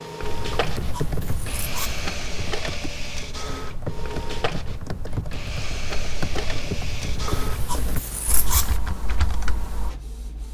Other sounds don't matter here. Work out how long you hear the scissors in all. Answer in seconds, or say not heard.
3 s.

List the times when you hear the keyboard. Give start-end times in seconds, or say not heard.
0.2-9.9.